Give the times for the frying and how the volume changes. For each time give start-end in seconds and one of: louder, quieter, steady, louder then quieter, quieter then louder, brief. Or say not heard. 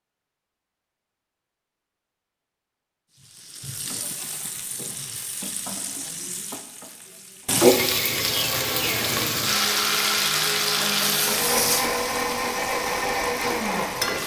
3.4-14.2 louder then quieter.